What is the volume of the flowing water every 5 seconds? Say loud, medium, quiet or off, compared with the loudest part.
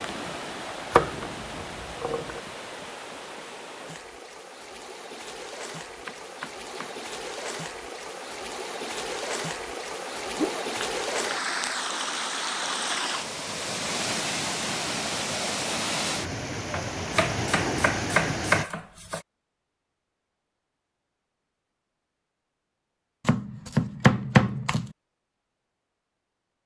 medium, medium, loud, loud, off, off.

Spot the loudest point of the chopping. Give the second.
24 s.